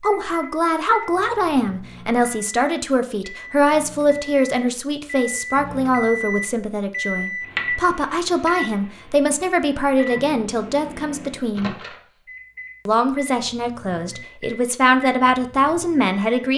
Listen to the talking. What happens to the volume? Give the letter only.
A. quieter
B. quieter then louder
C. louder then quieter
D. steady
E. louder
D.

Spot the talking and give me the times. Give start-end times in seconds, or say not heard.
0.0-11.8, 12.8-16.5.